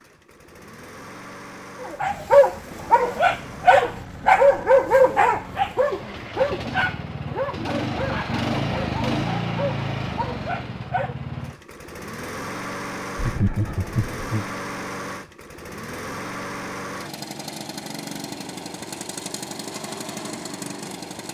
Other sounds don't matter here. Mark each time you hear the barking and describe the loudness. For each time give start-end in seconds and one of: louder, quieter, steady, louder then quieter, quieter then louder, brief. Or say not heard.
1.8-11.2 quieter.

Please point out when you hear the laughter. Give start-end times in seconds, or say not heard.
13.2-14.6.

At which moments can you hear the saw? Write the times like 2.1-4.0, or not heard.
not heard.